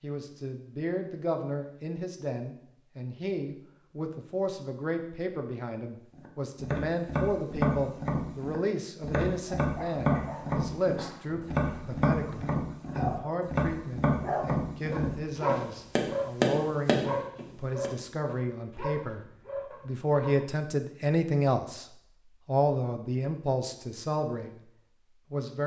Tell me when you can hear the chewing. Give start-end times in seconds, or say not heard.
not heard.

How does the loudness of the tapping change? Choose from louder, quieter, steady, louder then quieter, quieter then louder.
steady.